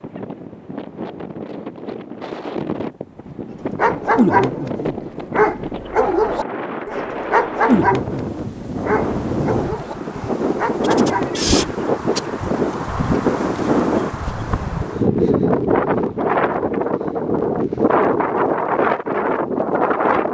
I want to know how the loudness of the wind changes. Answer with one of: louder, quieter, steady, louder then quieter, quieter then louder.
louder.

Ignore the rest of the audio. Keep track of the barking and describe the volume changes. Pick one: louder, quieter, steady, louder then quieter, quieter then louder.
quieter.